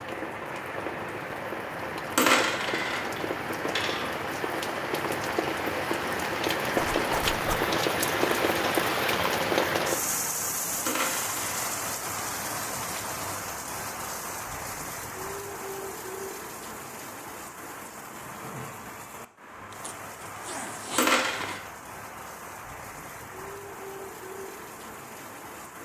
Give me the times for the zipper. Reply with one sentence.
The zipper can be heard from 6.8 to 7.7 s and from 19.7 to 21.6 s.